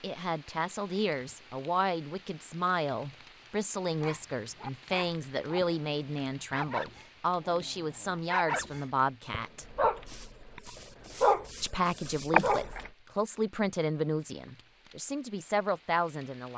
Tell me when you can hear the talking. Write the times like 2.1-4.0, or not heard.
0.0-9.7, 11.6-16.5.